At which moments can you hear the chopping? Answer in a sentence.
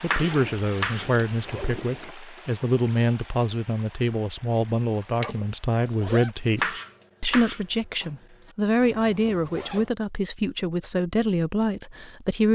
You can hear the chopping from 0.1 to 2.0 s and from 6.5 to 8.1 s.